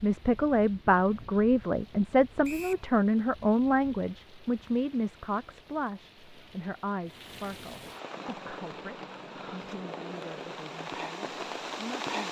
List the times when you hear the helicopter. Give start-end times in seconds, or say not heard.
8.1-12.1.